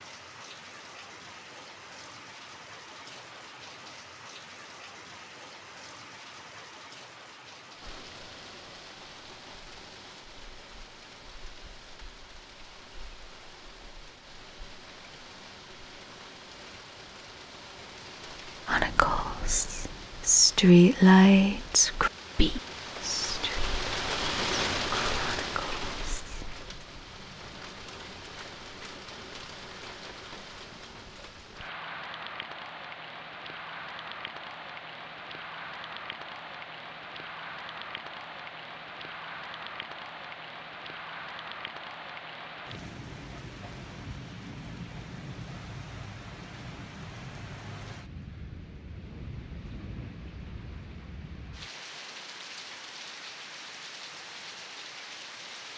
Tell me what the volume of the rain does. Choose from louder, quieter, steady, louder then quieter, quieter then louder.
louder then quieter.